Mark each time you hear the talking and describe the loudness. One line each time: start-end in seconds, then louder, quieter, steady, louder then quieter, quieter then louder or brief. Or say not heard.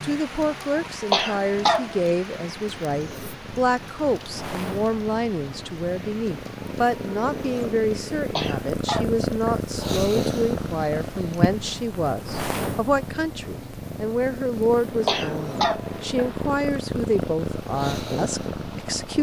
0.0-19.1 steady.